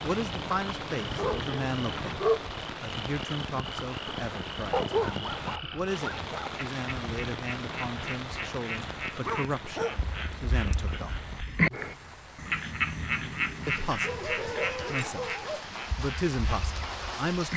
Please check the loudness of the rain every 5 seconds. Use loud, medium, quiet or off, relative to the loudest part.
loud, loud, medium, loud.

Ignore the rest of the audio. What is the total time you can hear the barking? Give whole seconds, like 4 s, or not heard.
7 s.